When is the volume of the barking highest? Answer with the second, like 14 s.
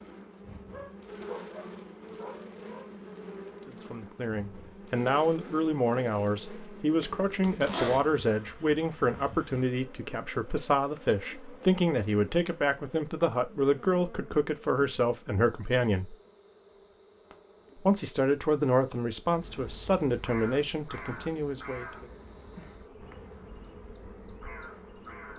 1 s.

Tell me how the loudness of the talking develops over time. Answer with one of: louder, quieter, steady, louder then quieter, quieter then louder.
steady.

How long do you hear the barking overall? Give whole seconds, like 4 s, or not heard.
2 s.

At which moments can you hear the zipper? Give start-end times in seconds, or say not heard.
7.0-8.1.